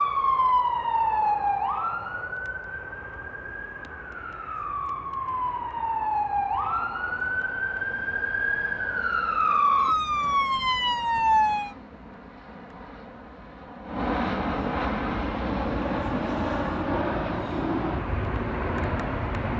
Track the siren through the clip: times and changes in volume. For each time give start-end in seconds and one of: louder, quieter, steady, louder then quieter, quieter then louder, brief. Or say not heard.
0.0-11.8 quieter then louder.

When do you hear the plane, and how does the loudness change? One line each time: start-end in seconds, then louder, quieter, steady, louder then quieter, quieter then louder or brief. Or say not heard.
0.0-19.5 louder.